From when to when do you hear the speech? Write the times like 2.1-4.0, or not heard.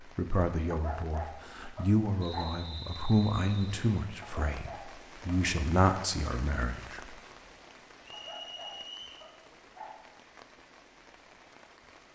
0.1-7.2.